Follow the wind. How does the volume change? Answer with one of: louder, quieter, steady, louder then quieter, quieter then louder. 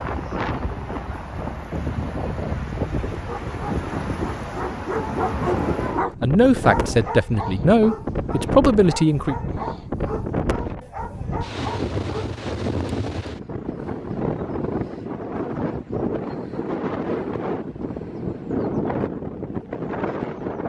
steady.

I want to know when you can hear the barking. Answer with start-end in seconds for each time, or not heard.
3.1-12.4.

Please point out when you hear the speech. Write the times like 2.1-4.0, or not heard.
6.2-9.3.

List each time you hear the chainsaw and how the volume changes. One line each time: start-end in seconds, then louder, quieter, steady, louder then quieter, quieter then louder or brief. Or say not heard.
not heard.